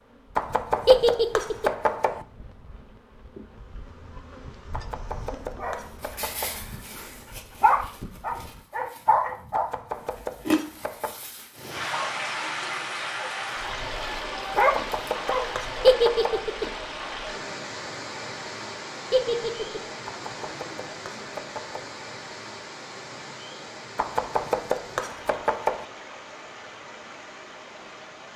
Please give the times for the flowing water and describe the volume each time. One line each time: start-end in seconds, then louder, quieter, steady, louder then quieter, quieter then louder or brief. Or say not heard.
11.6-28.3 quieter.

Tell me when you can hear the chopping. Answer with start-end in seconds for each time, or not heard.
0.3-2.2, 4.7-6.6, 9.5-11.2, 14.6-16.4, 20.1-21.9, 23.9-25.9.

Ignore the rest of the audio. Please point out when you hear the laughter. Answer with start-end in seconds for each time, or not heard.
0.8-1.7, 15.8-16.6, 19.1-19.9.